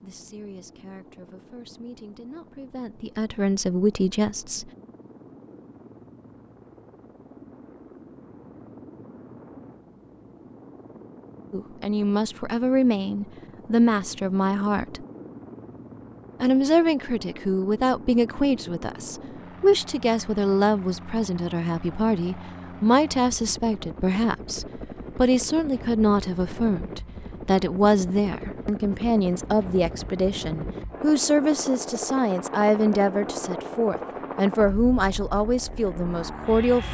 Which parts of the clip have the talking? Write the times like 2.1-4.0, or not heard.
0.0-4.7, 11.5-15.1, 16.4-36.8.